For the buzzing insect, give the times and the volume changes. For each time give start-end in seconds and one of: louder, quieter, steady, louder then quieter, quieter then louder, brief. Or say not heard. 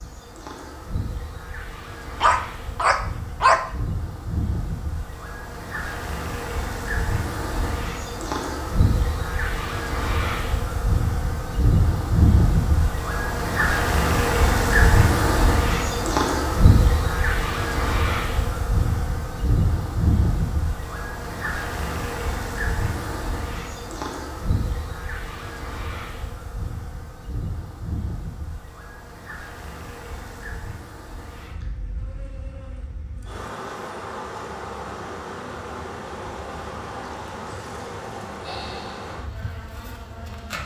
0.0-40.6 louder then quieter.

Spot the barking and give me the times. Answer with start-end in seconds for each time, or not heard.
2.2-3.6.